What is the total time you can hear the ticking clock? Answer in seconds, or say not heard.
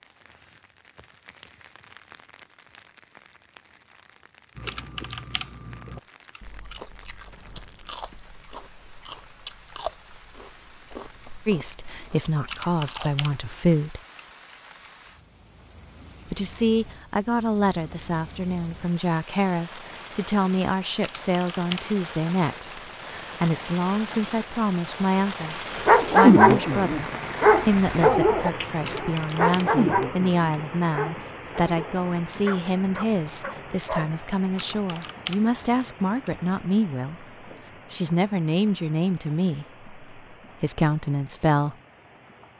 not heard.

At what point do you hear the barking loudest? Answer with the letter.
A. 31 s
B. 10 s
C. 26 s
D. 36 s
C.